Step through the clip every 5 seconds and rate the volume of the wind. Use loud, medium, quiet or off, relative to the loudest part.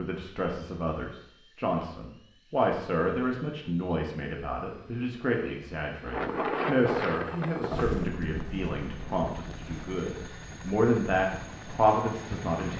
off, loud, medium.